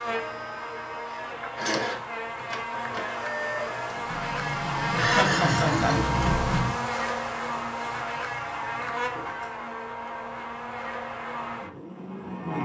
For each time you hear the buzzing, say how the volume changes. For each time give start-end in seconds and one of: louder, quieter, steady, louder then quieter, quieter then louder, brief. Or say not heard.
0.0-12.5 louder then quieter.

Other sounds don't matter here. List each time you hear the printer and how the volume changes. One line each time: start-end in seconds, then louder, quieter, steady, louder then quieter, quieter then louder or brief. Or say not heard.
0.0-6.5 louder.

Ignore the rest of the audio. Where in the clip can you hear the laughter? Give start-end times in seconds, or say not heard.
5.0-6.8.